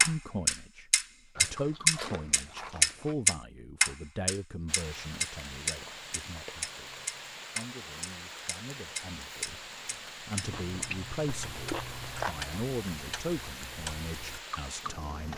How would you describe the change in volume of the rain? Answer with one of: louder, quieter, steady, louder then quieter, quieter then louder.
steady.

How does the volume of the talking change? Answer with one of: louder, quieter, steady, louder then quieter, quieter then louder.
quieter then louder.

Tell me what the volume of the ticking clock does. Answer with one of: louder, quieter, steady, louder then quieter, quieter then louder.
quieter.